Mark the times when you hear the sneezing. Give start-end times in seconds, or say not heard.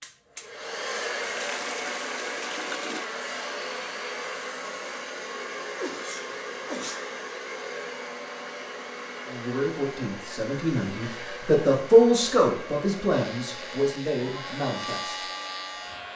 5.6-7.2.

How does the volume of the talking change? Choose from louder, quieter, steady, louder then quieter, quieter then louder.
louder then quieter.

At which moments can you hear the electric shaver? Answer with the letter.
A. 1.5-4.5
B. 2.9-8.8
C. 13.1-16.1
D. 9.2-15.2
C.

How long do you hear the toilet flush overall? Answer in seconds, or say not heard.
2 s.